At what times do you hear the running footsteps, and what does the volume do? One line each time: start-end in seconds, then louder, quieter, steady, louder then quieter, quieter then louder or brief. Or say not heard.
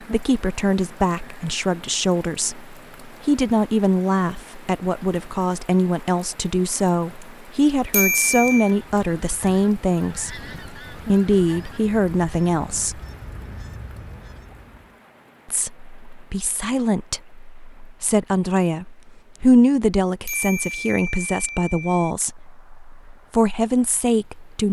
not heard.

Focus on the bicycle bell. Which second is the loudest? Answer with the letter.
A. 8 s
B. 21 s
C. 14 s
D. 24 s
A.